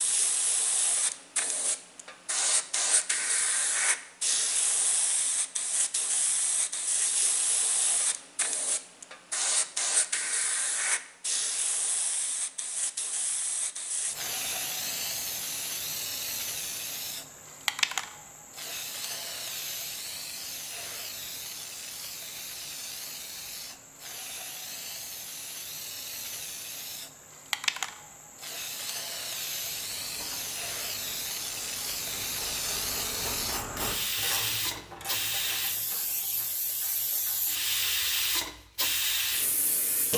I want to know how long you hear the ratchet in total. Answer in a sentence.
You can hear the ratchet for 8 seconds altogether.